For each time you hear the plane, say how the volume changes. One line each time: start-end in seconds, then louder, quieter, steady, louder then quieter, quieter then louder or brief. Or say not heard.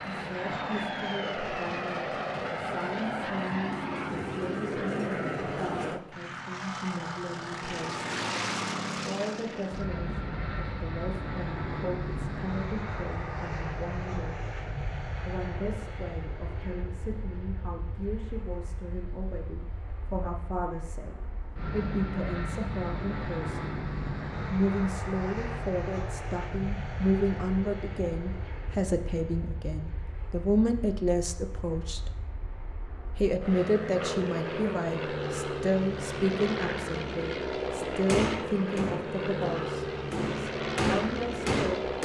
0.0-41.9 quieter then louder.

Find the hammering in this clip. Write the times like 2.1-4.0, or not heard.
38.0-41.9.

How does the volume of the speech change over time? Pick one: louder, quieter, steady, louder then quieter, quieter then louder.
louder.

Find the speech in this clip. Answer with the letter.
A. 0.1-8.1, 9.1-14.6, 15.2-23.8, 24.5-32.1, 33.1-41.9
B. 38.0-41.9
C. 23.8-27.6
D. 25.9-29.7
A.